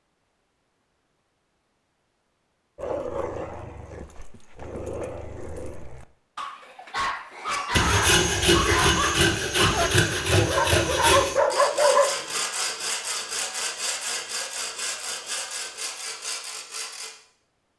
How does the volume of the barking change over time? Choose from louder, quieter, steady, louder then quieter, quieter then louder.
louder.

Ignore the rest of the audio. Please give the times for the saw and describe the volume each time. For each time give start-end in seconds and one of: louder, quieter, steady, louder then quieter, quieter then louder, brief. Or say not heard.
7.5-17.1 quieter.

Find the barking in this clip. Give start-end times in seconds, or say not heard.
2.8-12.3.